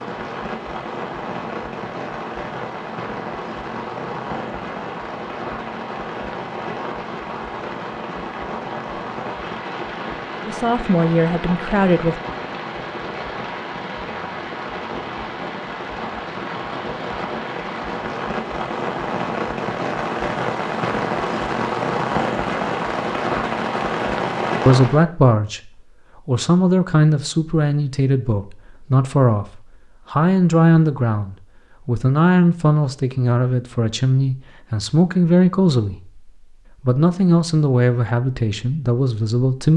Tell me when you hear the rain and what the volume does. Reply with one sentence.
You can hear the rain from 0.0 to 25.1 s, getting louder.